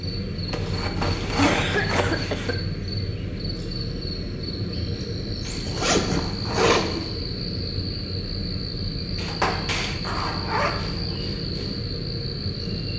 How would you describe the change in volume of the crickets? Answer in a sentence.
The loudness of the crickets stays about the same.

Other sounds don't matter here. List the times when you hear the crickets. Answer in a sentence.
You can hear the crickets from 0.0 to 12.9 s.